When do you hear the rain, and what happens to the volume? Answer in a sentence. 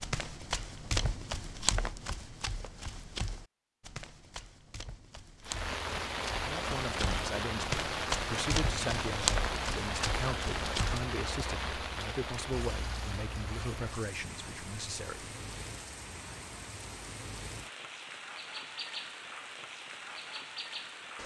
You can hear the rain from 5.4 to 21.2 s, getting quieter.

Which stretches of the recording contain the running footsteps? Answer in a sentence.
You can hear the running footsteps from 0.0 to 11.1 s.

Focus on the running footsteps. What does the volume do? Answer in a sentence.
The loudness of the running footsteps goes down, then up.